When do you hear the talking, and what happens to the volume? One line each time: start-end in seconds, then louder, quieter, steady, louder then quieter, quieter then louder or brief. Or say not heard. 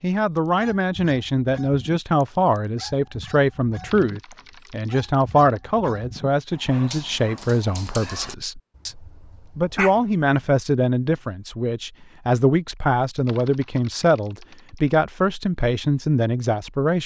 0.0-17.0 steady.